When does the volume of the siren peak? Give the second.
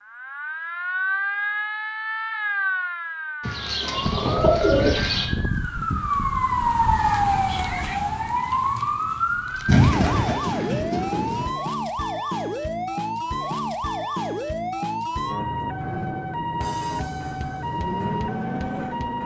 7 s.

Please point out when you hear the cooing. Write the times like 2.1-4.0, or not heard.
3.4-5.3, 9.7-11.4.